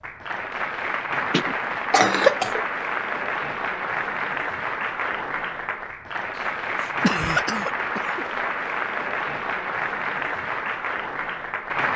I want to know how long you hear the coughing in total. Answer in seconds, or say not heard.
3 s.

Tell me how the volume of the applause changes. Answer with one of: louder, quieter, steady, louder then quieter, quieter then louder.
steady.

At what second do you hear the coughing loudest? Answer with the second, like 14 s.
2 s.